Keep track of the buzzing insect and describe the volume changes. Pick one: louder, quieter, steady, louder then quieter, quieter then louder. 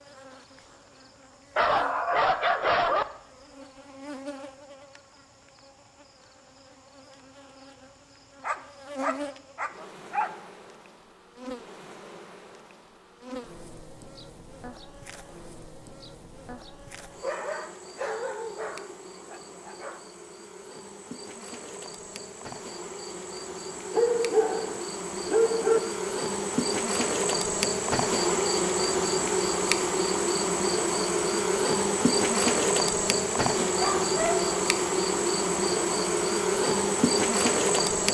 louder.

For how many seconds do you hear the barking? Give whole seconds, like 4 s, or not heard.
9 s.